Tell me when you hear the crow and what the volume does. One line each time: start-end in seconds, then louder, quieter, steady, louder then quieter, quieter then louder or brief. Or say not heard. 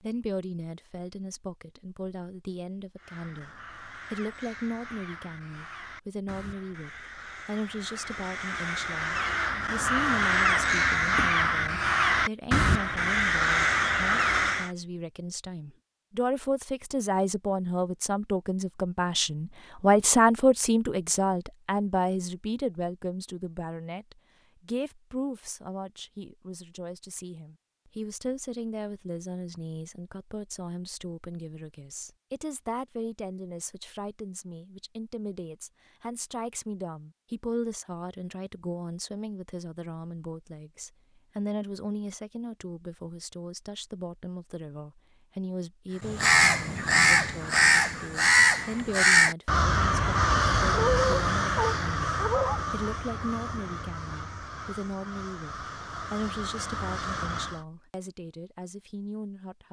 3.0-14.7 louder
46.0-57.6 quieter.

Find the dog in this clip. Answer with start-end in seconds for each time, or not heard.
50.7-52.6.